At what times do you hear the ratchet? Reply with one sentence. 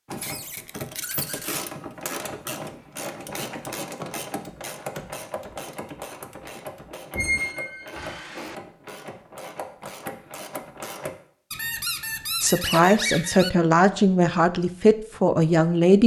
You can hear the ratchet from 0.1 to 11.2 s.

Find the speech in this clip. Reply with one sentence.
The speech can be heard from 12.4 to 16.0 s.